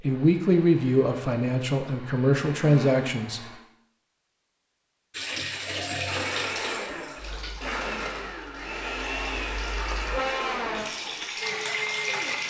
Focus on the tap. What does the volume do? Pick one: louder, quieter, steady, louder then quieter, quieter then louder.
quieter then louder.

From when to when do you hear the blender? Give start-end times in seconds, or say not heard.
0.0-3.6, 6.0-12.4.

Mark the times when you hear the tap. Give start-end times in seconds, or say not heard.
5.1-12.4.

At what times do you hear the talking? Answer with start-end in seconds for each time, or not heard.
0.0-3.4.